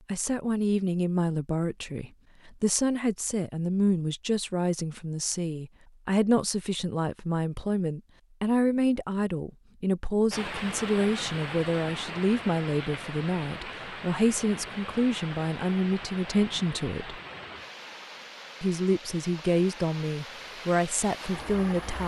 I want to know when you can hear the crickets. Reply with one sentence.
The crickets can't be heard in this clip.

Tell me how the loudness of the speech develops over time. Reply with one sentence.
The loudness of the speech stays about the same.